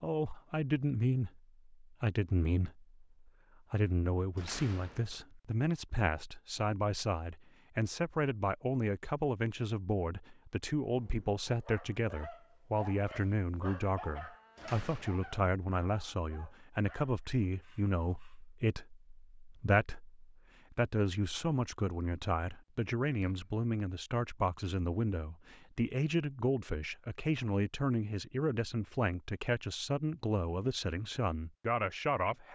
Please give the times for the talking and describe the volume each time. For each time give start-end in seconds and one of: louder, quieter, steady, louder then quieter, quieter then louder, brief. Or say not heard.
0.0-32.4 steady.